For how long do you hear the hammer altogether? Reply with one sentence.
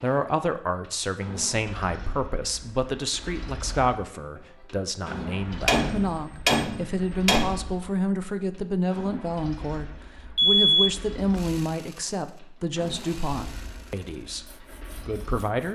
The hammer can be heard for 2 seconds in total.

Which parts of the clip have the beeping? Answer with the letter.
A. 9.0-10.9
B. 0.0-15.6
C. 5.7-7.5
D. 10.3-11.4
D.